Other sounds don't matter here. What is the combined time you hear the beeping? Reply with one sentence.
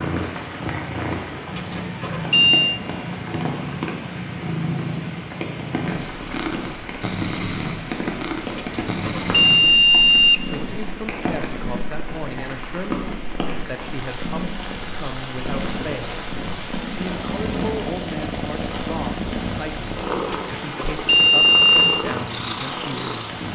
The beeping can be heard for 5 seconds in total.